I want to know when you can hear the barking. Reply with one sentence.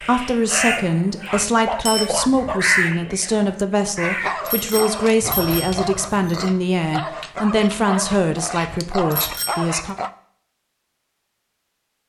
The barking can be heard from 1.2 to 10.1 s.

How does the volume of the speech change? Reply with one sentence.
The loudness of the speech stays about the same.